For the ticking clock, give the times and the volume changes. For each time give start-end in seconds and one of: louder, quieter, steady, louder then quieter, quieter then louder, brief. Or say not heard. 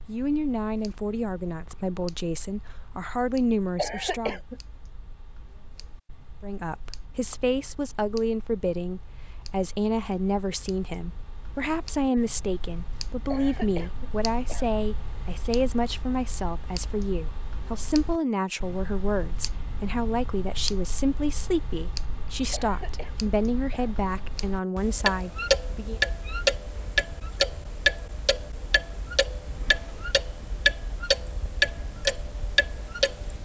0.0-33.4 louder.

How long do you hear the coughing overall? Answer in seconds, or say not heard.
4 s.